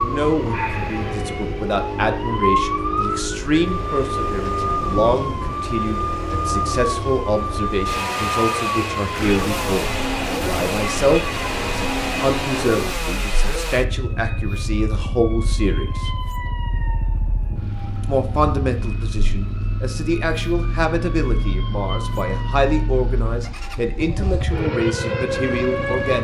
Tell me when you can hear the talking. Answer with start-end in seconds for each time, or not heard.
0.0-16.1, 18.0-26.1.